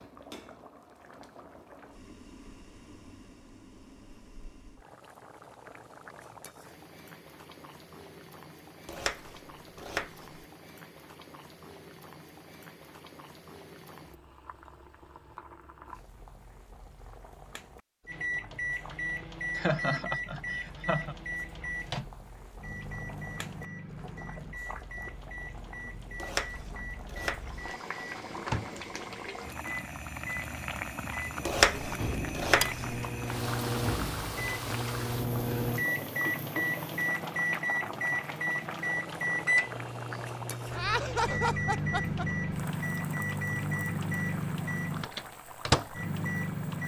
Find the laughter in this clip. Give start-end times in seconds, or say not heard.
19.6-21.1, 40.7-42.2.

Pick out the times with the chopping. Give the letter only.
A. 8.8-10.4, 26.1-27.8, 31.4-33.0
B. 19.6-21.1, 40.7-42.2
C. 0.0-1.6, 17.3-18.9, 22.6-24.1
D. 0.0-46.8
A.